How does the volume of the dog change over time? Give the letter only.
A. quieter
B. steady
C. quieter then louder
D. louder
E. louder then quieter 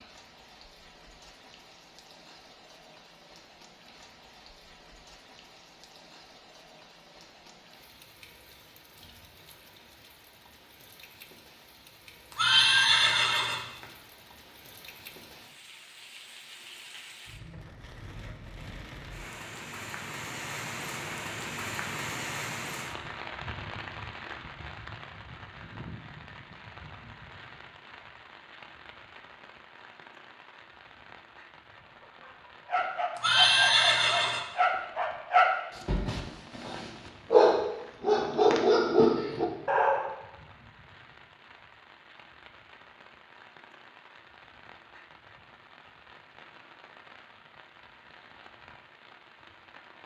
D.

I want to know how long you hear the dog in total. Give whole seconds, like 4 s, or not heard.
8 s.